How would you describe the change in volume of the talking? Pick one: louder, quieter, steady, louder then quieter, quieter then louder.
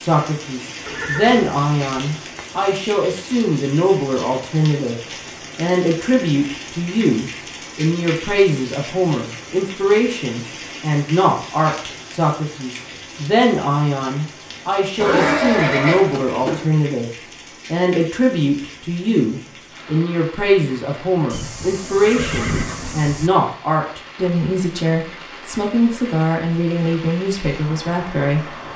steady.